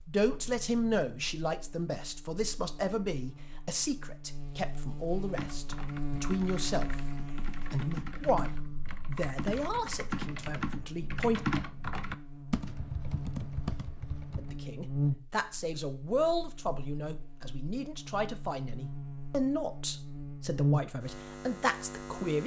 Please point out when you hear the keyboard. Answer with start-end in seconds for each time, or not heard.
5.3-14.6.